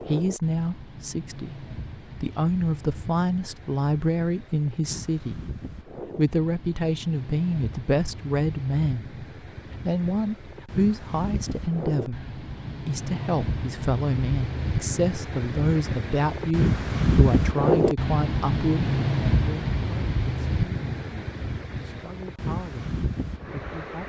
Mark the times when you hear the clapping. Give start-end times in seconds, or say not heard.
not heard.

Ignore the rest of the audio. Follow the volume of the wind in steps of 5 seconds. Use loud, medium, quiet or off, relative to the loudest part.
quiet, quiet, medium, loud, medium.